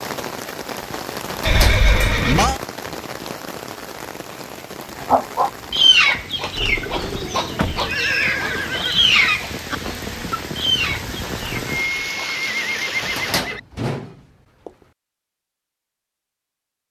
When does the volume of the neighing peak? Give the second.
2 s.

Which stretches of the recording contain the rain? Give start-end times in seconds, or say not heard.
0.0-13.6.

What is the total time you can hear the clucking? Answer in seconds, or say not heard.
7 s.